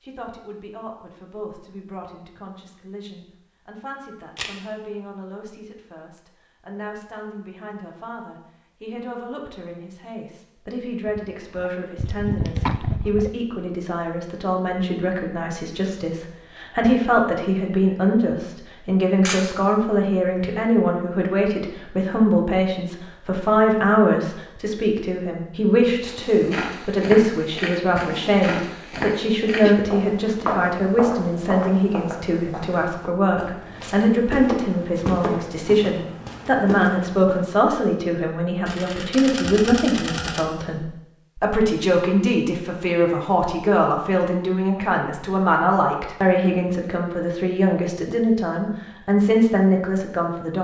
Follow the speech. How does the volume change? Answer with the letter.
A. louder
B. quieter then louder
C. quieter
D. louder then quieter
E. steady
A.